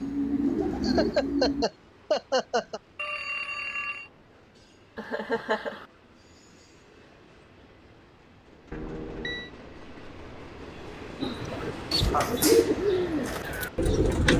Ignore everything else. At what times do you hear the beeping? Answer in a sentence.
You can hear the beeping from 3.0 to 4.1 s and from 8.7 to 9.5 s.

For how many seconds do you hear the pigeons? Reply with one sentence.
You can hear the pigeons for 5 seconds altogether.